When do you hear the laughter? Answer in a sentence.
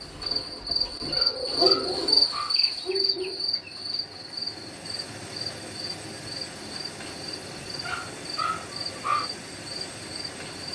You can't hear the laughter here.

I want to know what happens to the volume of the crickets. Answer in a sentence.
The volume of the crickets goes down.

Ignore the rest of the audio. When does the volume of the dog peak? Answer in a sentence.
The loudest moment of the dog is at 9 seconds.